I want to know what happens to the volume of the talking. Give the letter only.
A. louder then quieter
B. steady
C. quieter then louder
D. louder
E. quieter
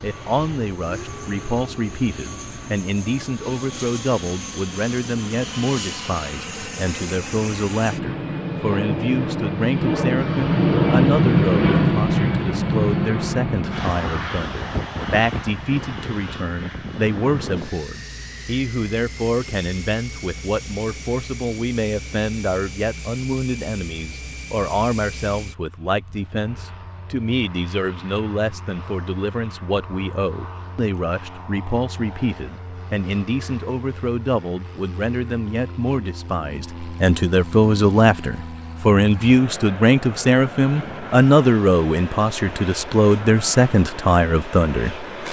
D.